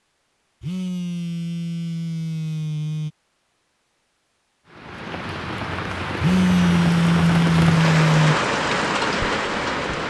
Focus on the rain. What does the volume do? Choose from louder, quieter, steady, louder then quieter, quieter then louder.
louder.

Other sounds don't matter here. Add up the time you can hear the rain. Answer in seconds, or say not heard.
5 s.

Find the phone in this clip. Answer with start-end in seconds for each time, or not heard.
0.6-3.1, 6.2-8.3.